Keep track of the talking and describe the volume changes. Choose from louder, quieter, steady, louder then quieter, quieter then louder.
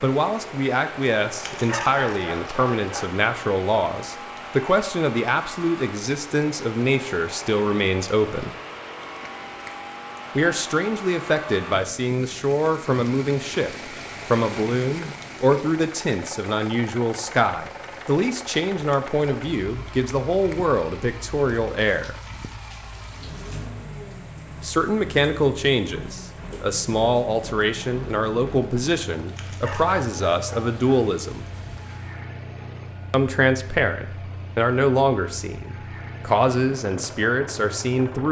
steady.